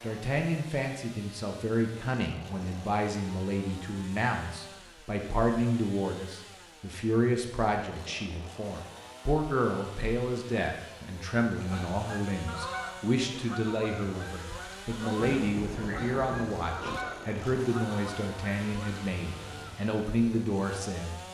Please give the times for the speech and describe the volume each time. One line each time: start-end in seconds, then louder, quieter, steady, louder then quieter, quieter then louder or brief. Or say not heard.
0.0-21.2 steady.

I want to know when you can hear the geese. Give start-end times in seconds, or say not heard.
11.7-19.9.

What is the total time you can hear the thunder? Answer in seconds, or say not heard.
2 s.